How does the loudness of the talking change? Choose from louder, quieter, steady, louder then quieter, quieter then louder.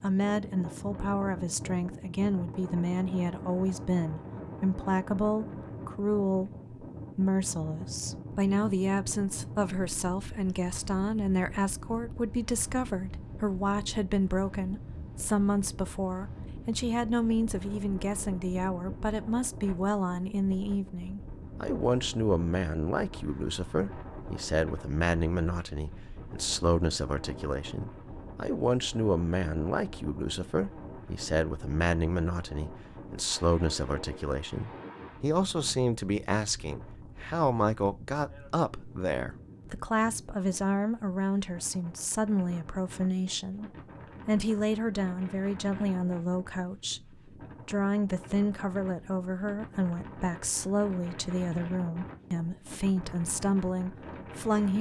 steady.